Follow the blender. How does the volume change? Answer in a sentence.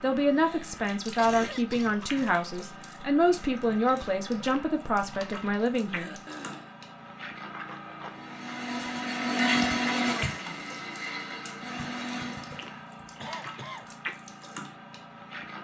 The loudness of the blender goes up, then down.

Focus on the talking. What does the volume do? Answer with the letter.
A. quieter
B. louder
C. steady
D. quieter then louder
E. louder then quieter
C.